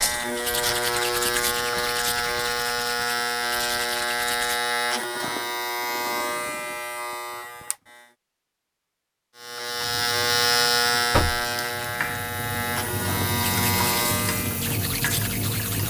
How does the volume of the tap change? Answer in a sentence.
The volume of the tap goes up.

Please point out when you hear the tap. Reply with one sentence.
The tap can be heard from 9.7 to 15.8 s.